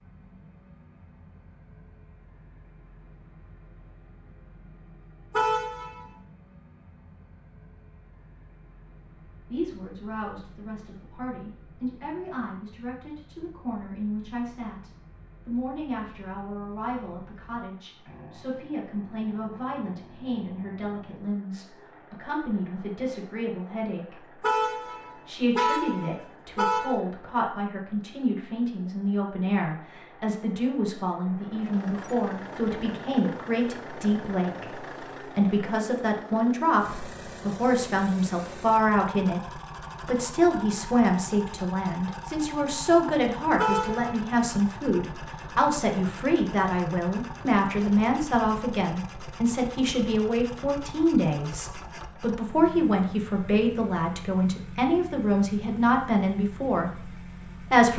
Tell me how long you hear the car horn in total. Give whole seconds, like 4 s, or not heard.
4 s.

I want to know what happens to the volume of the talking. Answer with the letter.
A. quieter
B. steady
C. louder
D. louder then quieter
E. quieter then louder
C.